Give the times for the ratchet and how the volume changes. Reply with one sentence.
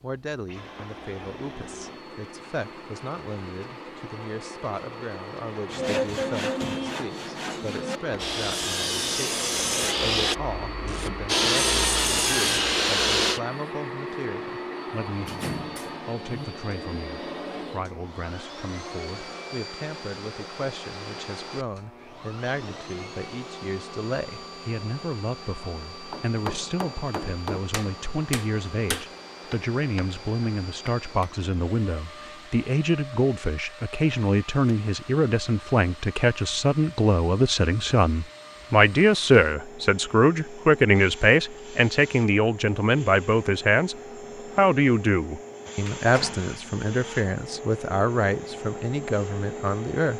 The ratchet can't be heard in this clip.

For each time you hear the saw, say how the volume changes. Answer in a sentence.
You can hear the saw from 5.7 to 13.4 s, getting louder.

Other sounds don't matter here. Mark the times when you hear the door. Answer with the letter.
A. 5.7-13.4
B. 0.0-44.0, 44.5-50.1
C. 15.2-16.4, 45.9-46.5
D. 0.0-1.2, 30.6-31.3
C.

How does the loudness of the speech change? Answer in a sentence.
The loudness of the speech goes up.